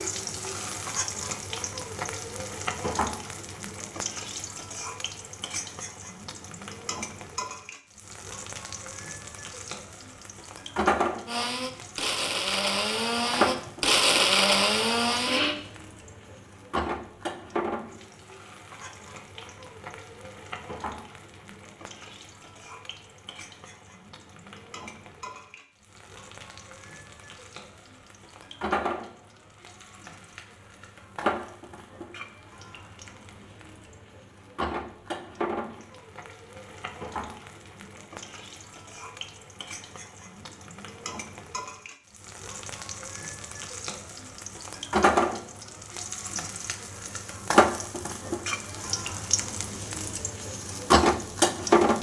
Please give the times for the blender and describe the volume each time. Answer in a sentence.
The blender can be heard from 11.2 to 15.6 s, getting louder.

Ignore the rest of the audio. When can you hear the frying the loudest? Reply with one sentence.
The loudest moment of the frying is at 51 seconds.